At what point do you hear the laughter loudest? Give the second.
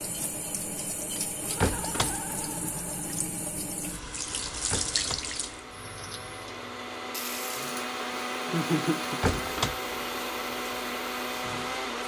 9 s.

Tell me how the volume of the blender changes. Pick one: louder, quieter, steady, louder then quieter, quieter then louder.
louder.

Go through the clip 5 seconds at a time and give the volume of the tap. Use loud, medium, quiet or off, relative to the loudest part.
loud, medium, medium.